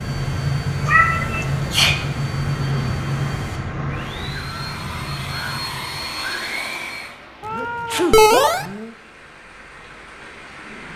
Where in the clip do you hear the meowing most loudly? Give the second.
8 s.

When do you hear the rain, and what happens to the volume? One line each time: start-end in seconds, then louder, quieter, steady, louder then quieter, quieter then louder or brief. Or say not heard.
0.0-10.9 quieter.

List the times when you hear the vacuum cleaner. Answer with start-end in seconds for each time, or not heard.
0.0-7.2.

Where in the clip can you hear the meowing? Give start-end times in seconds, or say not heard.
0.8-1.7, 7.4-8.7.